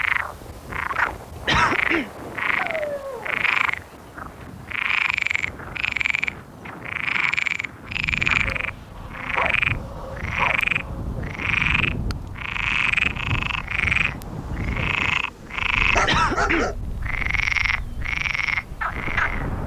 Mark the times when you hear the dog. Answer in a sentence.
You can hear the dog from 2.5 to 3.5 s, from 8.4 to 11.1 s and from 14.2 to 16.8 s.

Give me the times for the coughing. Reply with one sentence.
You can hear the coughing from 1.4 to 2.1 s and from 16.1 to 16.7 s.